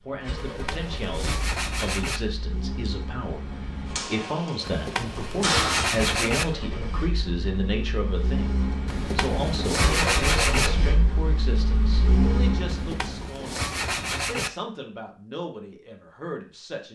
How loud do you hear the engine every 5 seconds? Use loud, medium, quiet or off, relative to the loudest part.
medium, loud, loud, off.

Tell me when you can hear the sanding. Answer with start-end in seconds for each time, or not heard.
0.3-2.2, 4.7-6.5, 8.8-10.7, 12.7-14.5.